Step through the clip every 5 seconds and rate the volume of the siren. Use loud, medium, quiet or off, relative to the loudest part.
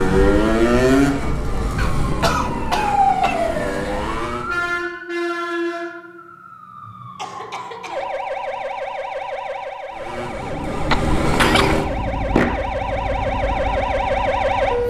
loud, medium, loud.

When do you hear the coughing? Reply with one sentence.
The coughing can be heard from 1.8 to 3.4 s, from 7.2 to 8.1 s and from 10.9 to 11.8 s.